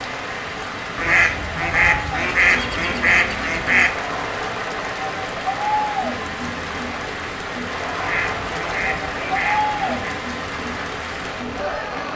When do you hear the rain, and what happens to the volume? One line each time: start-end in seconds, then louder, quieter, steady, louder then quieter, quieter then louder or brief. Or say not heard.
0.0-12.1 steady.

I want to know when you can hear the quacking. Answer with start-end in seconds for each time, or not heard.
0.9-3.9, 8.0-10.1.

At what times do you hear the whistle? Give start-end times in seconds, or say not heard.
not heard.